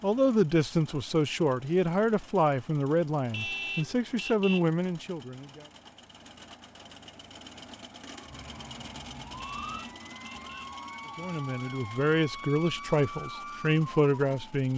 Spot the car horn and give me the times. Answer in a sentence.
The car horn can be heard from 3.3 to 4.7 s and from 9.3 to 10.8 s.